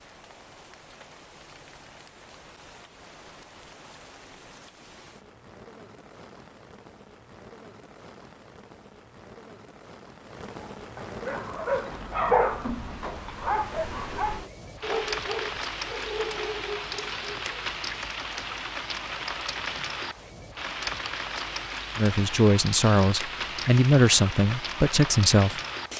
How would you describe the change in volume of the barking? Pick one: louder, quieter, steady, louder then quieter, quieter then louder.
quieter.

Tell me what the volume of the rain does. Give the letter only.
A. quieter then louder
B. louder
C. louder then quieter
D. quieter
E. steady
B.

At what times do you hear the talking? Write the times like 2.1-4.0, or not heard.
21.9-25.6.